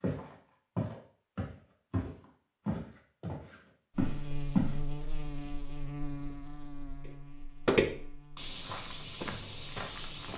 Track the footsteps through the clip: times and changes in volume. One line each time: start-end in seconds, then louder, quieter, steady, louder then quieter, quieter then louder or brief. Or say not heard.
0.0-4.8 quieter then louder
7.7-10.3 brief.